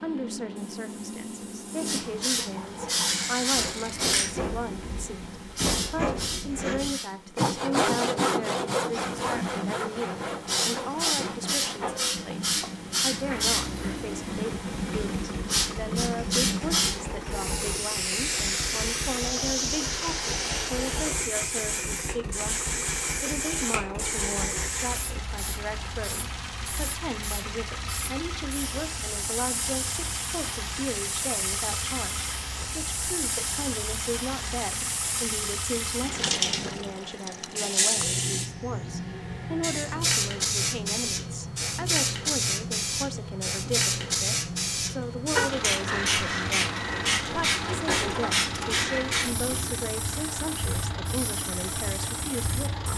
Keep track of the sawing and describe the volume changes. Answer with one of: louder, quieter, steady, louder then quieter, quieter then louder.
louder then quieter.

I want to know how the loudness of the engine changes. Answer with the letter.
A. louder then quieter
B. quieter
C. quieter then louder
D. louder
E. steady
E.